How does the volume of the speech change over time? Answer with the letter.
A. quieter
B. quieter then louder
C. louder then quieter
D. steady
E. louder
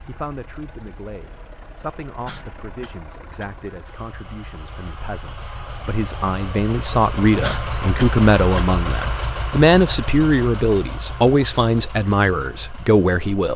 E.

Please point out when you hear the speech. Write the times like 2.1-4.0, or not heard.
0.1-13.5.